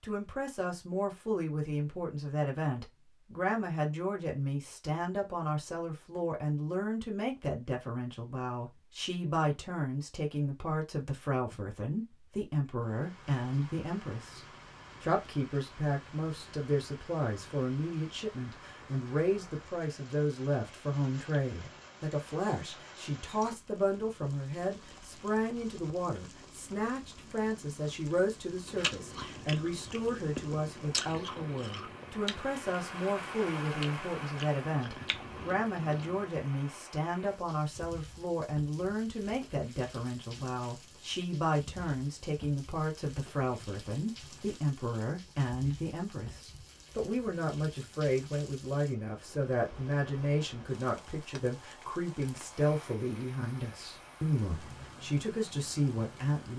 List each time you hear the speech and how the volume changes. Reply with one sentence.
You can hear the speech from 0.0 to 56.5 s, at a steady volume.